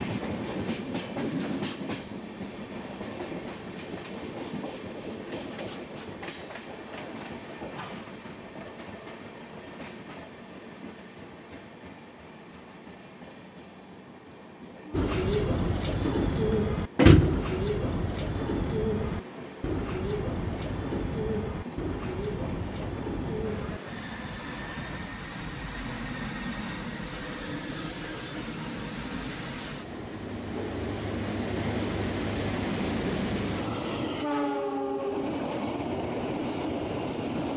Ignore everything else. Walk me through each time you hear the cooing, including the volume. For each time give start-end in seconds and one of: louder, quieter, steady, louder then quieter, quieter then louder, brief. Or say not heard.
14.9-23.8 quieter.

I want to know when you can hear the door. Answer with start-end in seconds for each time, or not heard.
16.9-17.5.